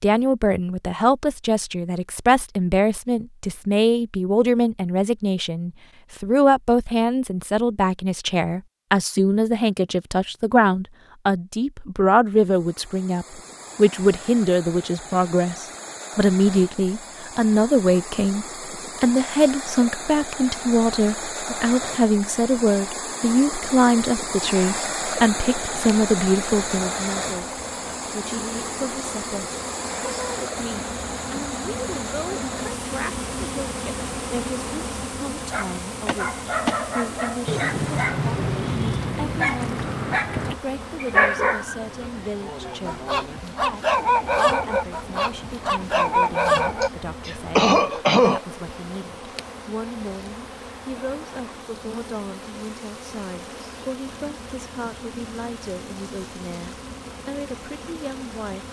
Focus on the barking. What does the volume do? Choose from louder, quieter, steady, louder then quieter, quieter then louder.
louder.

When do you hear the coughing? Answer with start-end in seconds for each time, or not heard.
46.8-48.4.